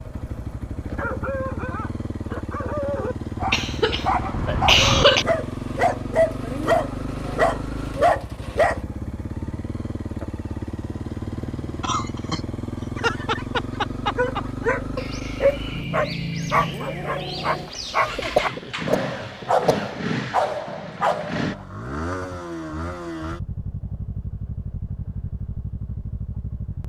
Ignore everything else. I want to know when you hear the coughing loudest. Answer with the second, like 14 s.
5 s.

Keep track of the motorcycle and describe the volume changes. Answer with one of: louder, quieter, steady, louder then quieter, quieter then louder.
steady.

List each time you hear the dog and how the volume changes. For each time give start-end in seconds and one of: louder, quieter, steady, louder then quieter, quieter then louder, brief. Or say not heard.
0.1-8.8 louder
12.9-21.6 steady.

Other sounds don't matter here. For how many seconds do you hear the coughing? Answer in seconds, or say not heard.
5 s.